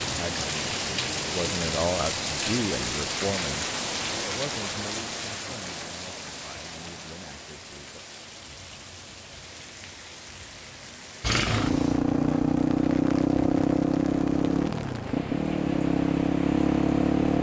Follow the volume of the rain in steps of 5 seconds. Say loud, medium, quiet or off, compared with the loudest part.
loud, medium, quiet, quiet.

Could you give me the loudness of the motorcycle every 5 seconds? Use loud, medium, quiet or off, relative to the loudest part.
off, off, loud, loud.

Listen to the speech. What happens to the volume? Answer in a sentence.
The volume of the speech goes down.